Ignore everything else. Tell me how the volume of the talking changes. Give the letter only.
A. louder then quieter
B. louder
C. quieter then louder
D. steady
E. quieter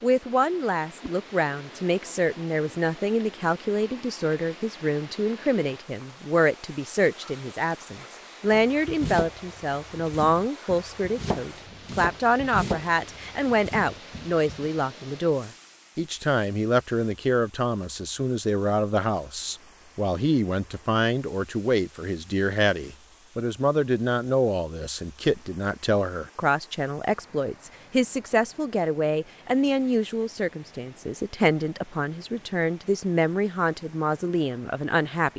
D.